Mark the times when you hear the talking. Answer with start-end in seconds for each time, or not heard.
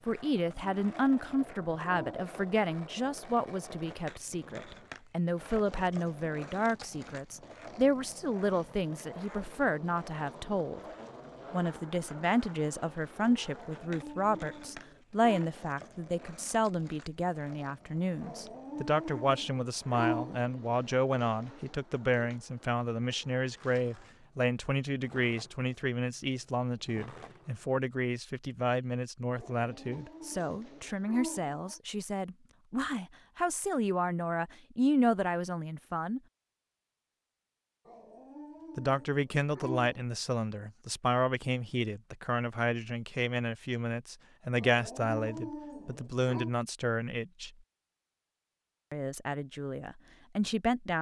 0.1-10.8, 11.5-36.2, 38.8-47.5, 48.9-50.9.